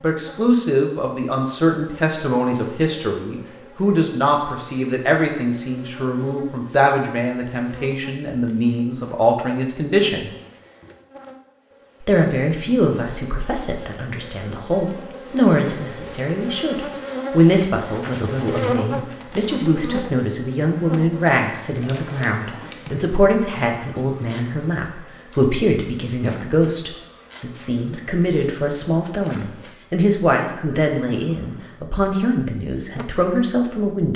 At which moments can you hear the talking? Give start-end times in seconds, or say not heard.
0.0-10.3, 12.1-34.1.